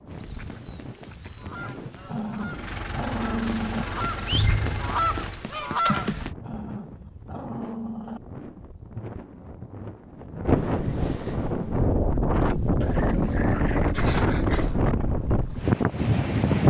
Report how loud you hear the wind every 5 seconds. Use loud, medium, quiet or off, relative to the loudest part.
quiet, quiet, loud, loud.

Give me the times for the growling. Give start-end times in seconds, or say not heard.
2.0-3.9, 6.4-8.2, 12.8-14.8.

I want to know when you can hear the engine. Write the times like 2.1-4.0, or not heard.
2.5-5.5.